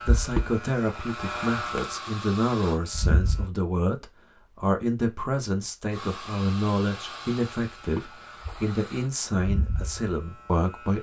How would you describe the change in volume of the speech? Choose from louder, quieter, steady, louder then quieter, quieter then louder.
steady.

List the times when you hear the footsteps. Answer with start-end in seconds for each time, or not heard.
not heard.